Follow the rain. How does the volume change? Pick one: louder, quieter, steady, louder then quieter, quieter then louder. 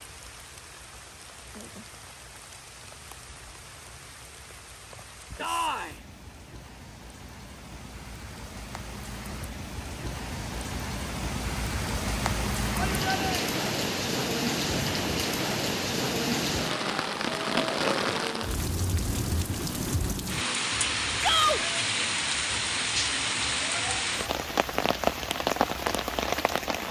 louder.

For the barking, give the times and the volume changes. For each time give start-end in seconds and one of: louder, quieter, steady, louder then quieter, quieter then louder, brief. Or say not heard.
not heard.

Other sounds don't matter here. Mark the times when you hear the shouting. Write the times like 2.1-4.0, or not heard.
5.3-6.0, 12.8-13.3, 21.2-21.6.